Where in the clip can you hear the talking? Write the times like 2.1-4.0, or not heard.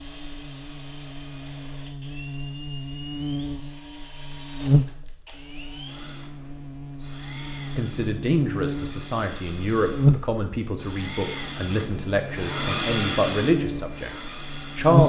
7.8-15.0.